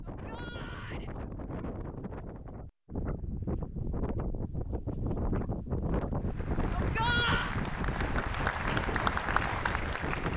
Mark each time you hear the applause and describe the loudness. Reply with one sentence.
You can hear the applause from 6.2 to 10.3 s, getting louder.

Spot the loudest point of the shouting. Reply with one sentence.
The volume of the shouting peaks at 7 seconds.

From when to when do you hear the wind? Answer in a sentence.
The wind can be heard from 0.0 to 10.3 s.